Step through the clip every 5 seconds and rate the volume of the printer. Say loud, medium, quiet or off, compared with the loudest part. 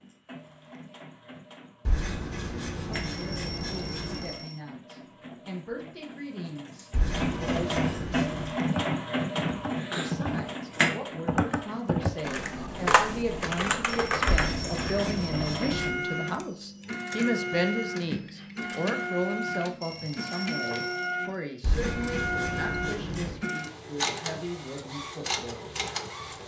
quiet, loud, loud, loud, loud, loud.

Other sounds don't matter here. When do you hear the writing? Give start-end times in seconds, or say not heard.
1.9-4.3, 6.9-8.5, 14.2-15.9, 21.6-23.4.